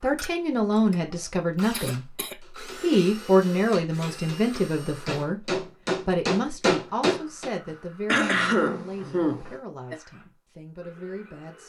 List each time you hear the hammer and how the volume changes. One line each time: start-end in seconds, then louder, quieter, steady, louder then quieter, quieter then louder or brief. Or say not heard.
2.4-7.5 louder.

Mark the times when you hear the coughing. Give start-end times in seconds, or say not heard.
1.7-2.4, 8.1-10.0.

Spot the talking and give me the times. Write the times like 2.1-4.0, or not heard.
0.0-11.6.